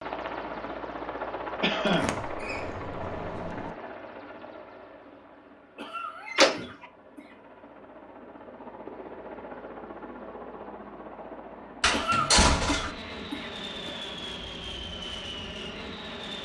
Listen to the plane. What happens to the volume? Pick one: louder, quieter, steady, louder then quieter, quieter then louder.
quieter then louder.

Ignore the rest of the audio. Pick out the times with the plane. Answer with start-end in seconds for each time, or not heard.
0.0-16.3.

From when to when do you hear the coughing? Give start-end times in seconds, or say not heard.
1.6-2.2, 5.8-7.3, 11.9-13.9.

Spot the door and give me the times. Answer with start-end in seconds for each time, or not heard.
1.9-3.7, 6.2-6.8, 11.8-12.9.